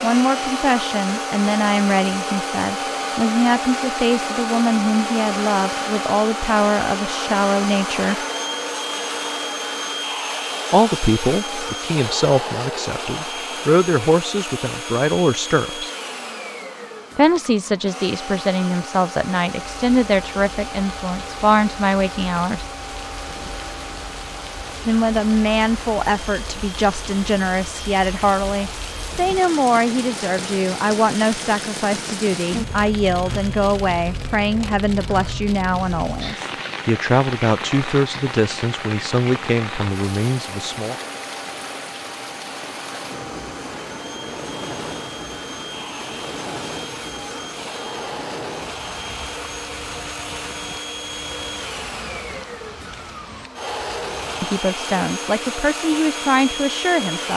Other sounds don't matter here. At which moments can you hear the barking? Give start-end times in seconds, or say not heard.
not heard.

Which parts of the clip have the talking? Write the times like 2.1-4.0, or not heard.
0.0-8.2, 10.7-15.9, 17.1-22.6, 24.9-41.0, 54.4-57.3.